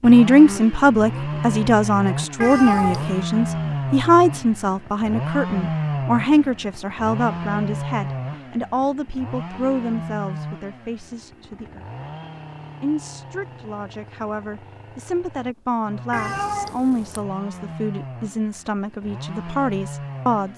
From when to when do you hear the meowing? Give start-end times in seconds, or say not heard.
2.4-3.2, 16.1-17.2.